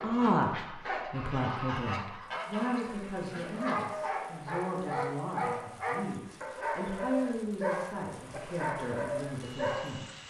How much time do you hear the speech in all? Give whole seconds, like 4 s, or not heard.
10 s.